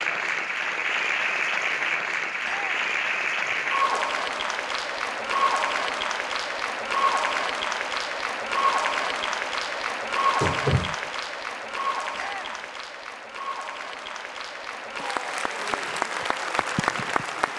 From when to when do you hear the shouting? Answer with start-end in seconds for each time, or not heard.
2.4-2.9, 12.2-12.7.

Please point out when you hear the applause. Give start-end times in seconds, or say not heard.
0.0-17.5.